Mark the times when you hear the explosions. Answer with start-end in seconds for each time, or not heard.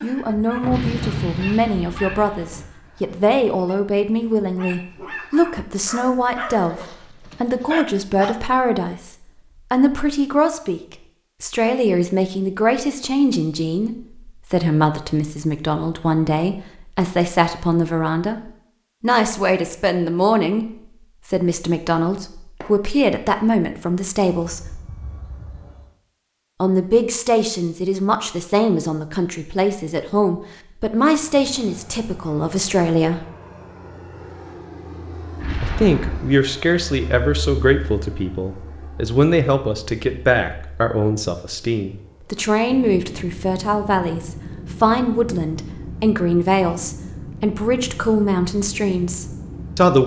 0.6-2.6, 35.4-36.4.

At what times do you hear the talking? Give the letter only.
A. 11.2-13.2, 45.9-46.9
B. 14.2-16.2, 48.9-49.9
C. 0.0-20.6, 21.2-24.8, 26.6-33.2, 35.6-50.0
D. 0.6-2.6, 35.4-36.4
C.